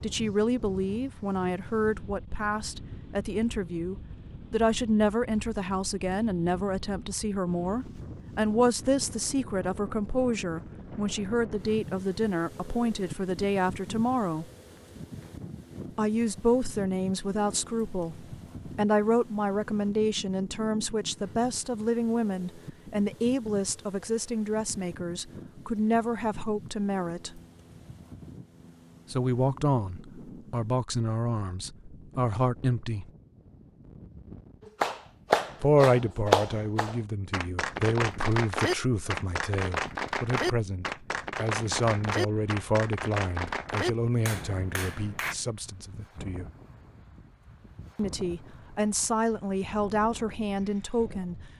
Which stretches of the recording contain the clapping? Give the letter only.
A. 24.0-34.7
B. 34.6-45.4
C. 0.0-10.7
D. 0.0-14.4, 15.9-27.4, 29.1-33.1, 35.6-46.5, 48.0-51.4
B.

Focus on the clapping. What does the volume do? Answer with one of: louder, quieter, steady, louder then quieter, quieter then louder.
quieter.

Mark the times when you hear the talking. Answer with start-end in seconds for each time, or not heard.
0.0-14.4, 15.9-27.4, 29.1-33.1, 35.6-46.5, 48.0-51.4.